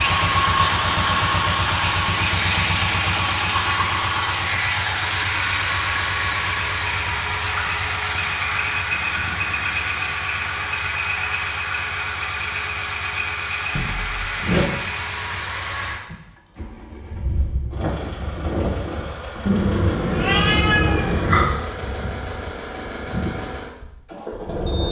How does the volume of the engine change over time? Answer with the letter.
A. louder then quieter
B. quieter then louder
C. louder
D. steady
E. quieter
E.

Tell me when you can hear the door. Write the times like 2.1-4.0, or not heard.
13.8-14.7.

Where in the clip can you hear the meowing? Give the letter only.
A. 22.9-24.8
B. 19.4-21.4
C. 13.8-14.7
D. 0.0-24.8
B.